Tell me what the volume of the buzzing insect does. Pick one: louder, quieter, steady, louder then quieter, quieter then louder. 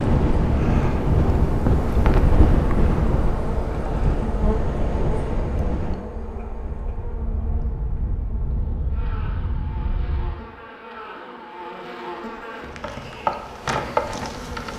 quieter then louder.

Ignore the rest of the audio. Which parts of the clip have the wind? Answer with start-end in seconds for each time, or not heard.
0.0-10.3.